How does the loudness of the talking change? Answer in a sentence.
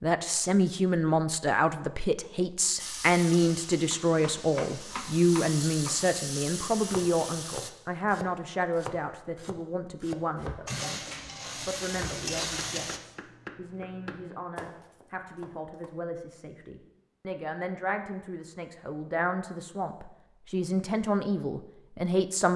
The volume of the talking goes down, then up.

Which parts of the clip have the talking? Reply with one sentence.
You can hear the talking from 0.0 to 22.5 s.